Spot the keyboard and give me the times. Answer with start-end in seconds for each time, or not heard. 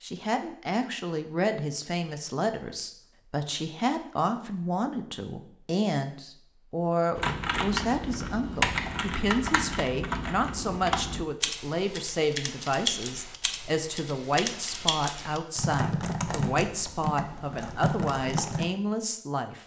7.2-18.6.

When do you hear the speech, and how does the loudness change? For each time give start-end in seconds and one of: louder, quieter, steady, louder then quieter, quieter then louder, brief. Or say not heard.
0.0-19.6 steady.